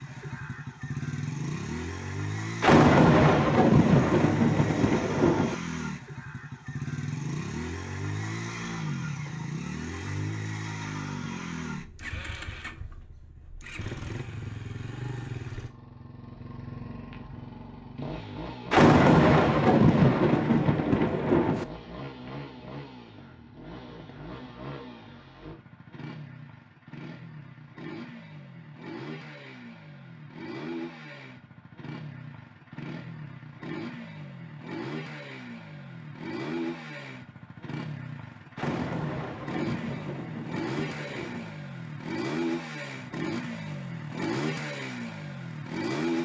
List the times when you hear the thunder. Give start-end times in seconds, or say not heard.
2.6-5.5, 18.7-21.6, 38.5-41.5.